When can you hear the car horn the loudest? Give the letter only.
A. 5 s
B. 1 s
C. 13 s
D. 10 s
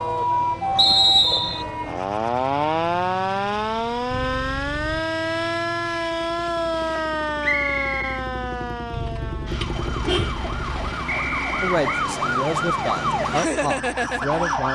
D.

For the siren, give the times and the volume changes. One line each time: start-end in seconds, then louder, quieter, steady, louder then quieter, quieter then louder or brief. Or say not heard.
0.0-14.7 quieter then louder.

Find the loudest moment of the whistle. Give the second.
1 s.